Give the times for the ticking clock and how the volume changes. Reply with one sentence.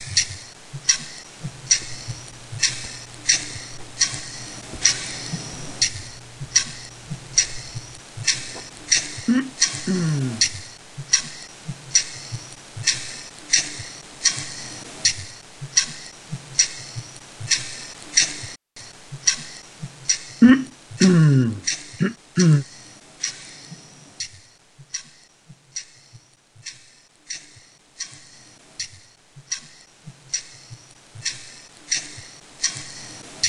The ticking clock can be heard from 0.0 to 33.4 s, getting quieter.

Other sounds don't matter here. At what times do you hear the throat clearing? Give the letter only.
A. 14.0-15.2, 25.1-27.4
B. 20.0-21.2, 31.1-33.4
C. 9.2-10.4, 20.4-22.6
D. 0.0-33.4
C.